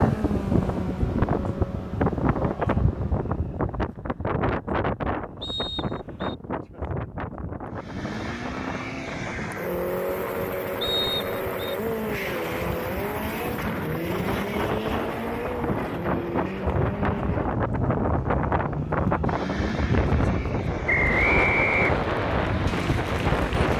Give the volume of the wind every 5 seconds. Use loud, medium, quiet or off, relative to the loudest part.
loud, medium, medium, loud, loud.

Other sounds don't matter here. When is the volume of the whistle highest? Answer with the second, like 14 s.
21 s.